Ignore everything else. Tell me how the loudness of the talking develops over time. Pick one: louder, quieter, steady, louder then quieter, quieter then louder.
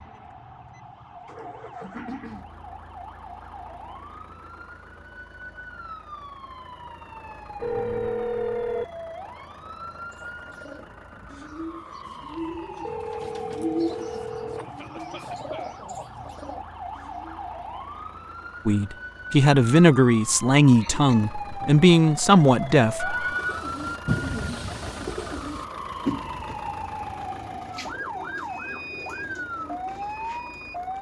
steady.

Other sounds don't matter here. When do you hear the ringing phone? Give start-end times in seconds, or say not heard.
7.6-8.8, 12.8-14.7, 22.9-23.6.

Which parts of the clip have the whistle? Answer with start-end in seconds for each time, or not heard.
not heard.